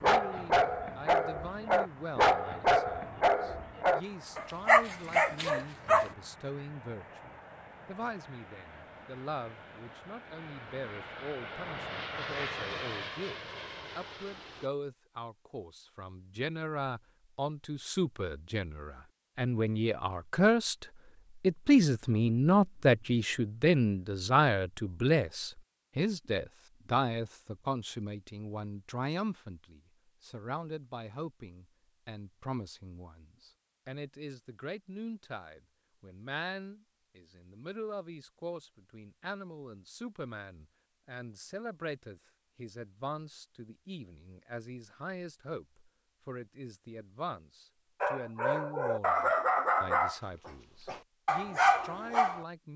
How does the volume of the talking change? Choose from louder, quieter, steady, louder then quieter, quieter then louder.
louder then quieter.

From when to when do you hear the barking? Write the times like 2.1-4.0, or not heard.
0.0-6.2, 48.0-52.5.